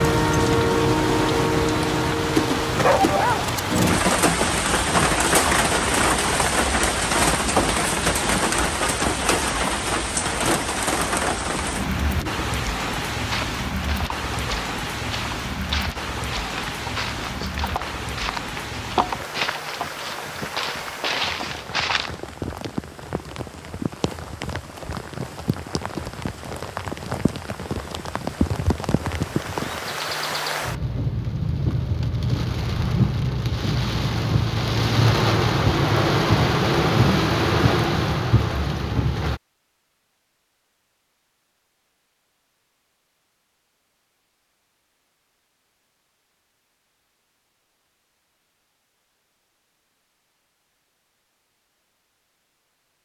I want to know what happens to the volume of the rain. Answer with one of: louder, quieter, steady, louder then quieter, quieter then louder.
quieter then louder.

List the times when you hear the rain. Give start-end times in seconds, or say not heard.
0.0-39.4.